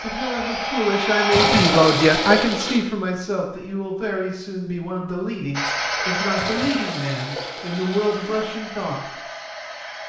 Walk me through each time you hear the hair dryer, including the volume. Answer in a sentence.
The hair dryer can be heard briefly from 0.0 to 2.2 s; and from 5.5 to 10.0 s, getting quieter.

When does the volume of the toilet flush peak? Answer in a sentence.
The volume of the toilet flush peaks at 2 seconds.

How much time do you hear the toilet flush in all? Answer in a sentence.
You can hear the toilet flush for 4 seconds altogether.